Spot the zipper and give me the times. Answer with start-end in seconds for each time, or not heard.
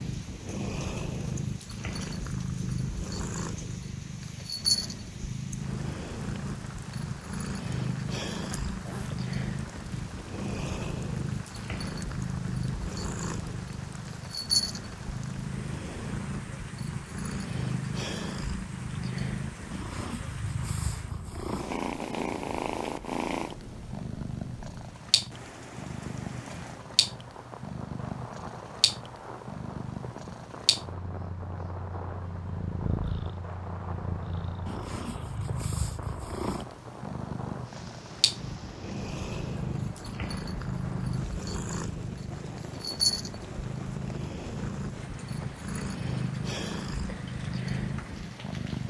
8.5-9.2.